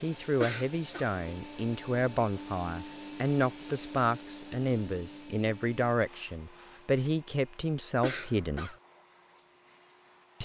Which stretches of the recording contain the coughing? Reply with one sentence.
You can hear the coughing from 0.4 to 1.1 s and from 8.0 to 8.8 s.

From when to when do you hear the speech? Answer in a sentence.
The speech can be heard from 0.0 to 8.8 s.